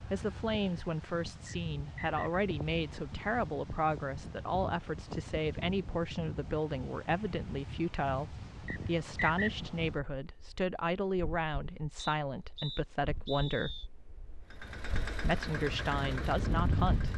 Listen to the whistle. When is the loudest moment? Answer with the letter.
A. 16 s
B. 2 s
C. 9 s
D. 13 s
C.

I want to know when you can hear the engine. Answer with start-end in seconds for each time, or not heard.
14.4-17.1.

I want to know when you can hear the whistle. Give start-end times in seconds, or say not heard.
1.4-2.2, 8.7-9.5, 11.9-13.9.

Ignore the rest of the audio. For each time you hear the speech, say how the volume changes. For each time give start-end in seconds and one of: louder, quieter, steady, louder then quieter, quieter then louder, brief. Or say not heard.
0.0-13.9 steady
15.2-17.1 brief.